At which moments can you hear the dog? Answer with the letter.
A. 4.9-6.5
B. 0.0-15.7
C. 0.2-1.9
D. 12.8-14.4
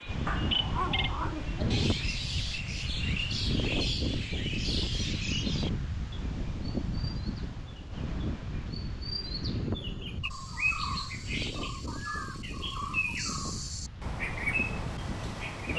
C.